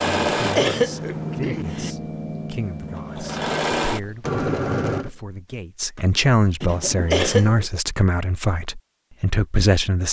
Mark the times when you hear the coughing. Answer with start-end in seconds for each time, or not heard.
0.1-1.9, 6.6-7.7.